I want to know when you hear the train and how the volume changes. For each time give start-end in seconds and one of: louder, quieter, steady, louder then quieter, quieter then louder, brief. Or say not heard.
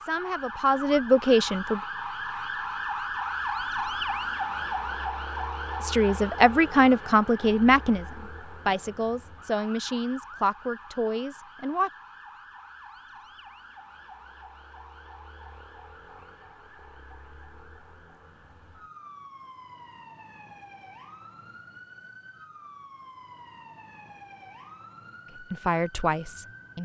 not heard.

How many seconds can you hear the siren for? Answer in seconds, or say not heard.
27 s.